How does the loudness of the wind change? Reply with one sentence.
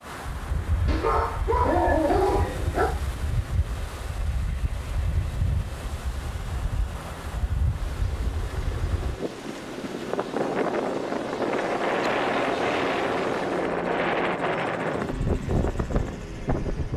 The volume of the wind goes up.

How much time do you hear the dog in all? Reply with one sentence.
The dog can be heard for 2 seconds in total.